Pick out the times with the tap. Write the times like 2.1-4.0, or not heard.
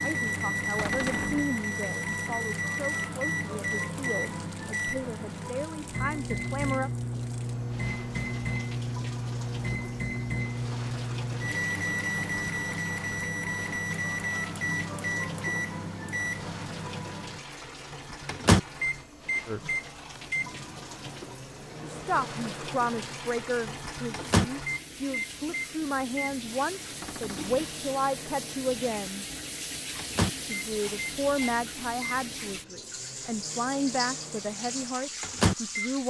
0.0-36.0.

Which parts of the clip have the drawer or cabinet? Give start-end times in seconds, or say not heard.
0.8-1.6, 27.0-27.7.